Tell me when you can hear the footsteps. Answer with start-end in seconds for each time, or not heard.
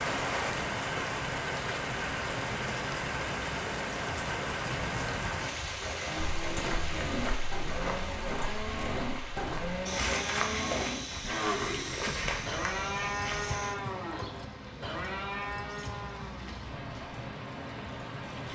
6.4-13.8.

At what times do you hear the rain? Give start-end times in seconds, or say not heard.
0.0-18.5.